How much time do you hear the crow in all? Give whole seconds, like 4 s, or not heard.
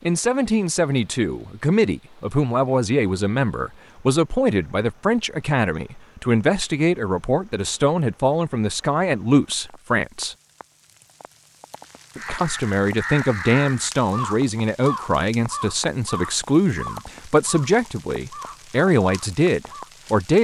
8 s.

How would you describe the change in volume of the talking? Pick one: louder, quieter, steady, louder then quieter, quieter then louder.
steady.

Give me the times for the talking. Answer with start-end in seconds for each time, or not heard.
0.0-10.3, 12.2-20.4.